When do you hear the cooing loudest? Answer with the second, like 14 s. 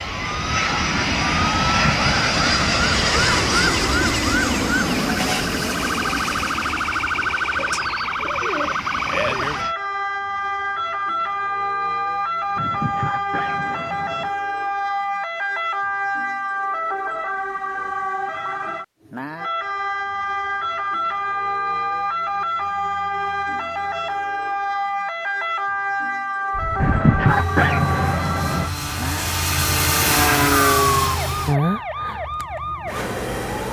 9 s.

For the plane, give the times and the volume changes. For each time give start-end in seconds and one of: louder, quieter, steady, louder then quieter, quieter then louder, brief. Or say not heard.
0.0-9.8 quieter
26.5-31.6 louder.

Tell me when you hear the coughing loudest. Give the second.
27 s.